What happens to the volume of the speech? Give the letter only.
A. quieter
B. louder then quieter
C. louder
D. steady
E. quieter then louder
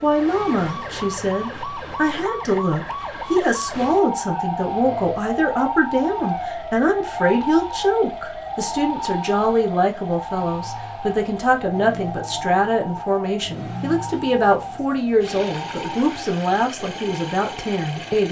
D.